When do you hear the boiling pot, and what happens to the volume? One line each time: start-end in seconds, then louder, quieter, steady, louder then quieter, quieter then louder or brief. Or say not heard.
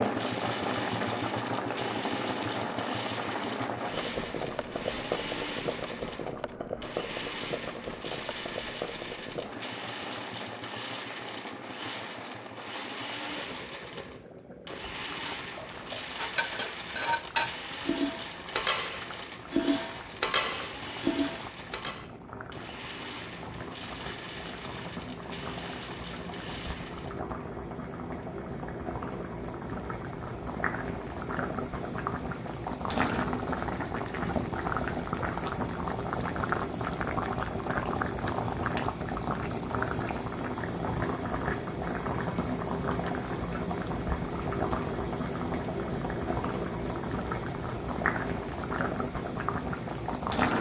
0.0-50.5 quieter then louder.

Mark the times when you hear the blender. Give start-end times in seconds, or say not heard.
0.0-27.2.